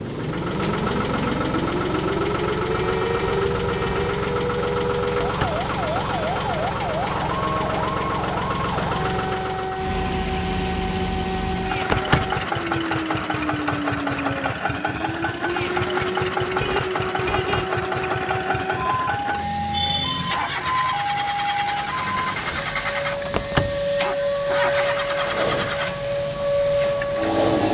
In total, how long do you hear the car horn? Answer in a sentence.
You can hear the car horn for 3 seconds altogether.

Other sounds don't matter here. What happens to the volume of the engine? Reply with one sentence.
The loudness of the engine stays about the same.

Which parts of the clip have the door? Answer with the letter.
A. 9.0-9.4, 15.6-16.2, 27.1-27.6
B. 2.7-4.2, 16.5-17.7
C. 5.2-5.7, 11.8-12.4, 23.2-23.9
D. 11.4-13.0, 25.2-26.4
C.